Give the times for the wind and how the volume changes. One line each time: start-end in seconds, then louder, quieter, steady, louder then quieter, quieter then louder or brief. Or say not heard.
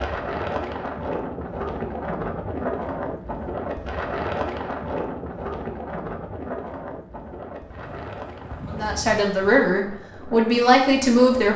0.0-11.5 quieter.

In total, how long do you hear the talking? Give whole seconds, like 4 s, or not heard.
3 s.